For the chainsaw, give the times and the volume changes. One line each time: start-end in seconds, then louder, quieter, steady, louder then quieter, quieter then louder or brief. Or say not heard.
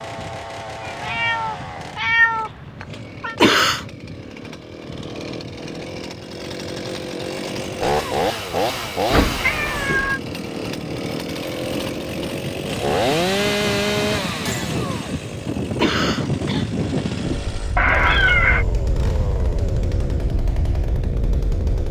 0.0-21.8 louder then quieter.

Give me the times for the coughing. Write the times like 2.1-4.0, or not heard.
3.4-3.9, 15.8-16.7.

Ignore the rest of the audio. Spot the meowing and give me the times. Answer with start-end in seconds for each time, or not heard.
0.8-3.4, 9.1-10.2, 17.8-18.6.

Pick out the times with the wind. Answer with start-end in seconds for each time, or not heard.
0.0-21.8.